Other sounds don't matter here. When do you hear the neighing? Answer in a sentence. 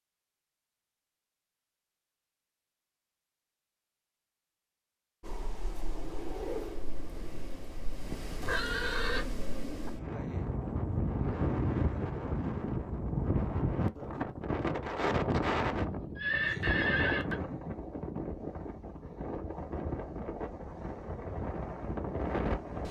You can hear the neighing from 8.1 to 9.2 s and from 16.1 to 17.4 s.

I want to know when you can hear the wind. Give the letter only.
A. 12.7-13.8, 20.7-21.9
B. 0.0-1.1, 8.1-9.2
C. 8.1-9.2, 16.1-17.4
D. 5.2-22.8
D.